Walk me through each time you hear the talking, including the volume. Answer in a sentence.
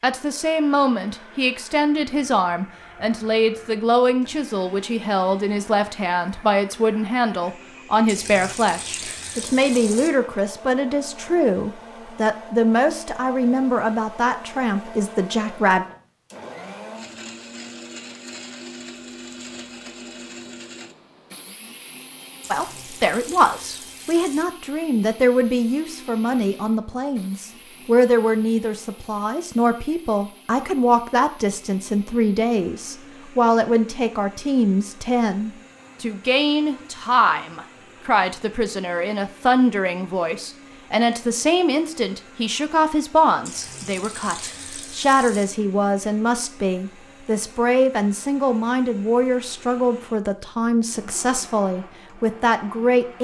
You can hear the talking from 0.0 to 15.8 s, at a steady volume; and from 22.5 to 53.1 s, at a steady volume.